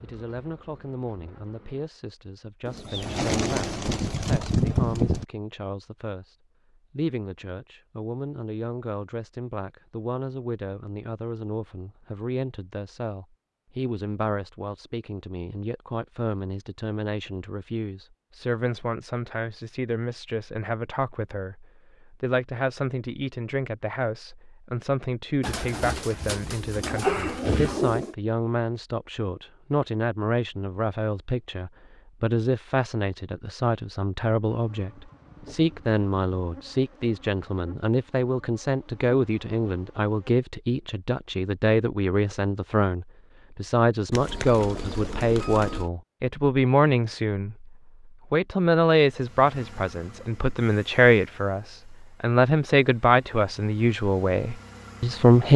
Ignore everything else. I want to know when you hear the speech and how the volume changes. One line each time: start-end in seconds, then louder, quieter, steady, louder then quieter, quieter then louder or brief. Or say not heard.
0.0-55.5 louder.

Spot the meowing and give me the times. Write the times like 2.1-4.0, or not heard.
not heard.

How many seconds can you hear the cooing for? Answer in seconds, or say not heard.
7 s.